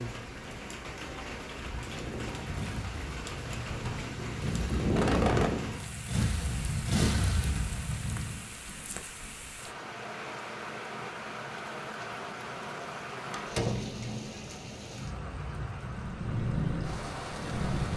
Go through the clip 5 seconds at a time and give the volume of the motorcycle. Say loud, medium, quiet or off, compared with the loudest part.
medium, loud, off, loud.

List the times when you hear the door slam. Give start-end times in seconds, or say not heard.
3.6-4.2, 13.3-13.9.